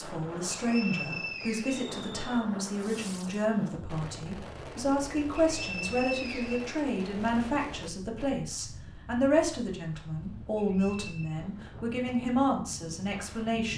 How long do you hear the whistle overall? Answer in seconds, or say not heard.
4 s.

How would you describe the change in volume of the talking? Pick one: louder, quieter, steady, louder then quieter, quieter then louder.
steady.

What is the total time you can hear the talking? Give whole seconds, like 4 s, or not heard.
14 s.